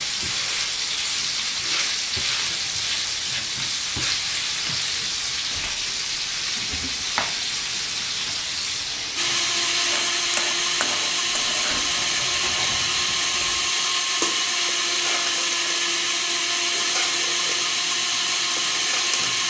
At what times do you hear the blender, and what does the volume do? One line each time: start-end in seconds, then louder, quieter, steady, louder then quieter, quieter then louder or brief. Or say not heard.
9.2-19.4 steady.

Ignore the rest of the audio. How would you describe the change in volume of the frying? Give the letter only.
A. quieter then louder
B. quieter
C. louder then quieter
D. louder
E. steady
B.